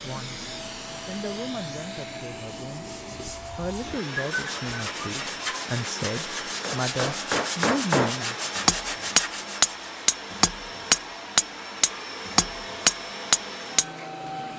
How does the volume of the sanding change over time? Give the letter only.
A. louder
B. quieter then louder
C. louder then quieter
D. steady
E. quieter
A.